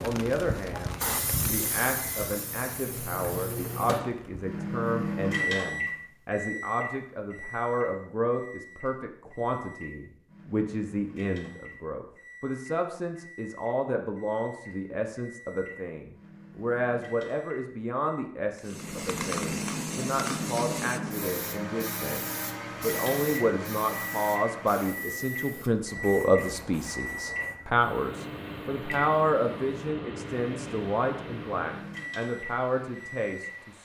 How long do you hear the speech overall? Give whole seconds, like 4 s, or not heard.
34 s.